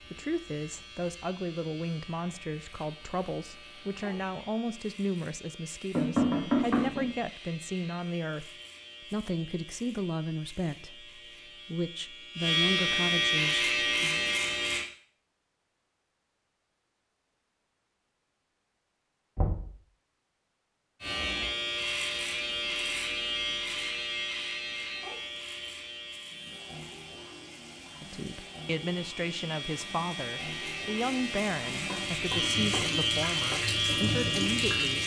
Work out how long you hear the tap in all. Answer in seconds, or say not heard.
9 s.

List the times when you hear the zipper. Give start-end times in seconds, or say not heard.
not heard.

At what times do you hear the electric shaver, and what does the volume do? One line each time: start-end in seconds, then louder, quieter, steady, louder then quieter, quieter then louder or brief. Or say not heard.
0.0-14.8 louder
21.0-35.0 quieter then louder.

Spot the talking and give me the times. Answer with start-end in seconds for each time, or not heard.
0.1-8.5, 9.1-14.2, 28.0-35.0.